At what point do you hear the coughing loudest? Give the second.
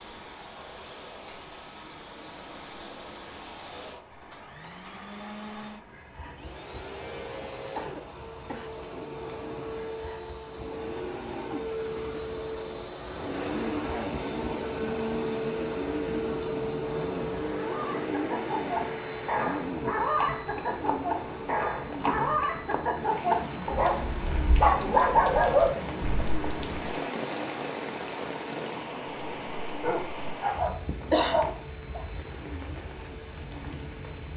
31 s.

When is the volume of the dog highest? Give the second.
25 s.